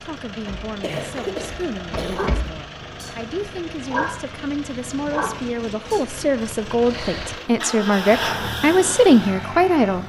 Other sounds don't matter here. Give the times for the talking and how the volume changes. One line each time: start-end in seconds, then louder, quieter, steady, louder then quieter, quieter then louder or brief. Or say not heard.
0.0-10.0 louder.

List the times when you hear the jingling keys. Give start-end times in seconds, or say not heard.
0.5-2.5.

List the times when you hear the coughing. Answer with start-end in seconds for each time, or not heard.
0.8-2.3, 6.5-7.3.